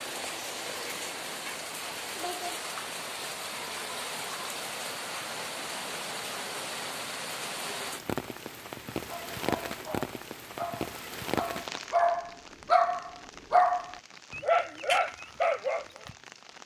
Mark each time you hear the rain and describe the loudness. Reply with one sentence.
You can hear the rain from 0.0 to 16.6 s, getting quieter.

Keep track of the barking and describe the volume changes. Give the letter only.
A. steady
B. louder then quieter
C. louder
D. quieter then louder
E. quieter
C.